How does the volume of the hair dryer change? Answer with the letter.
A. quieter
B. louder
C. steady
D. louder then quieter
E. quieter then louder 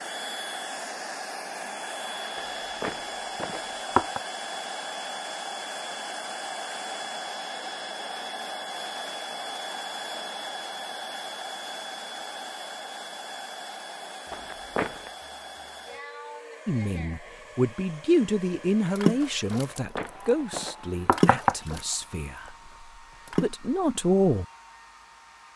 A.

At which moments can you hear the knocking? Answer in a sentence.
The knocking can be heard from 2.4 to 4.2 s, from 14.3 to 15.1 s and from 19.5 to 21.6 s.